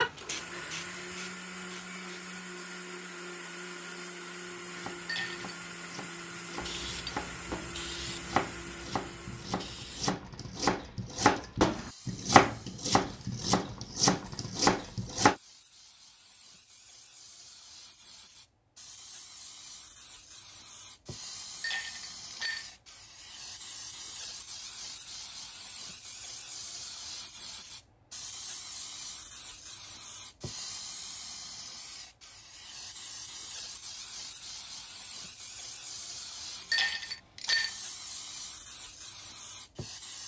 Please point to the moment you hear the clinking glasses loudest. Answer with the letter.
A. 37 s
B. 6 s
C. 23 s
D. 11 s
A.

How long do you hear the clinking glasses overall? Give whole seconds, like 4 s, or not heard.
3 s.